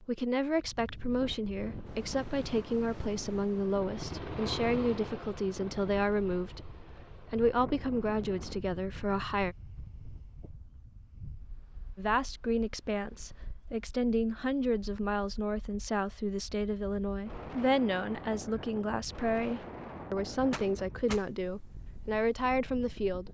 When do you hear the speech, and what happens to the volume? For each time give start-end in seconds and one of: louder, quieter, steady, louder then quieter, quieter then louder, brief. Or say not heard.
0.0-9.6 steady
11.9-23.2 steady.